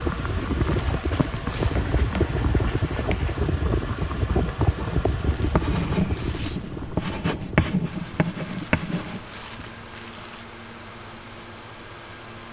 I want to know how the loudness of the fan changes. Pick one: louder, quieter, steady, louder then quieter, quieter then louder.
quieter.